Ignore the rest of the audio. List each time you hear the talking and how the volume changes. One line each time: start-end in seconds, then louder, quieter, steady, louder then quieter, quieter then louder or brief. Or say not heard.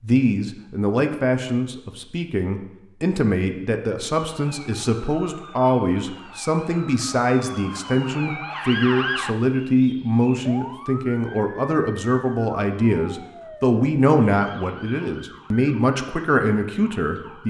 0.0-17.4 steady.